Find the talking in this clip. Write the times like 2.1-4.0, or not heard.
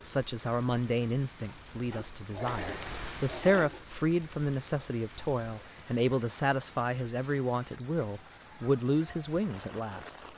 0.1-10.2.